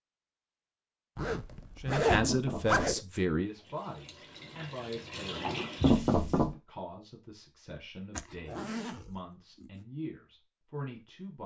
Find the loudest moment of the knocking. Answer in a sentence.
The loudest moment of the knocking is at 6 seconds.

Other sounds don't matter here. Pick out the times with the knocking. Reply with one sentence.
You can hear the knocking from 2.2 to 2.9 s and from 5.8 to 6.5 s.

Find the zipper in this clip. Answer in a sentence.
The zipper can be heard from 1.1 to 3.0 s and from 8.2 to 9.8 s.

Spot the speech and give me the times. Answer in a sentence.
You can hear the speech from 1.8 to 11.4 s.